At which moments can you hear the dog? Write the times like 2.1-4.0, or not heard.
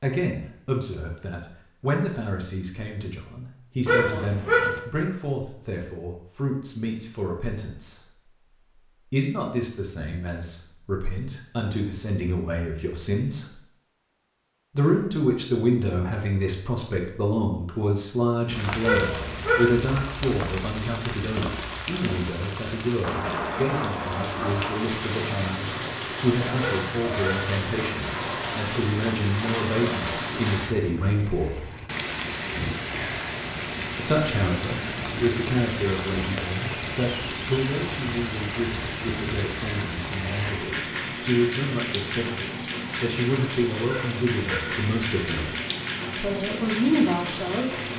3.9-4.8, 18.8-19.8, 26.6-27.6, 43.9-44.8.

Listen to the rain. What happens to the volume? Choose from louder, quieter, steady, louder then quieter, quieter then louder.
steady.